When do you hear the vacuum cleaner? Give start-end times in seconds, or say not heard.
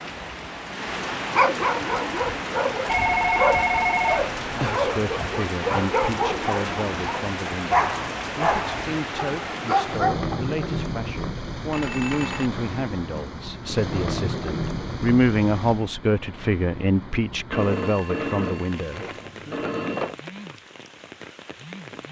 not heard.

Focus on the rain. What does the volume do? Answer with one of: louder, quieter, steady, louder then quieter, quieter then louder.
quieter.